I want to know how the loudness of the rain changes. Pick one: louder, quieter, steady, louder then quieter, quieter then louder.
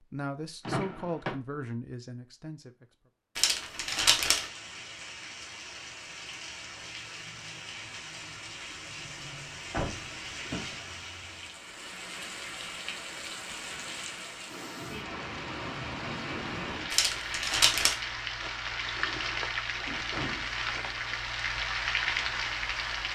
louder.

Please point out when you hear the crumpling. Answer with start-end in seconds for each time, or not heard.
3.4-4.5, 16.9-17.9.